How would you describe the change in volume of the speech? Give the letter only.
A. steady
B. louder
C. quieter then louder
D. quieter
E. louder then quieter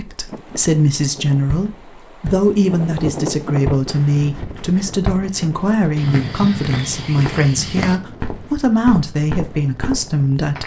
A.